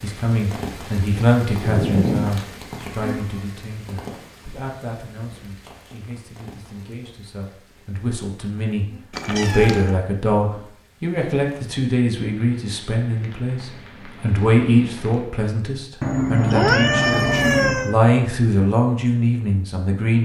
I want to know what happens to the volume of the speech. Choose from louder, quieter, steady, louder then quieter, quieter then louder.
quieter then louder.